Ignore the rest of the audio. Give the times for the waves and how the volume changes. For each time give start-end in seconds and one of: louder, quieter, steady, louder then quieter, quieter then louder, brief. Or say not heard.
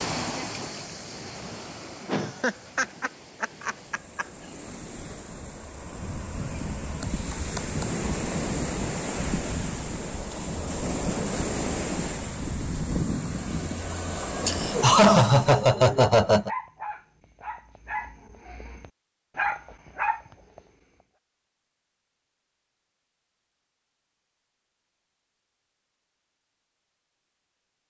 0.0-15.7 louder.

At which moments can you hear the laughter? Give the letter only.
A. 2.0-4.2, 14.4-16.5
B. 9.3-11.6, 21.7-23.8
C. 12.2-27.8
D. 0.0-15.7
A.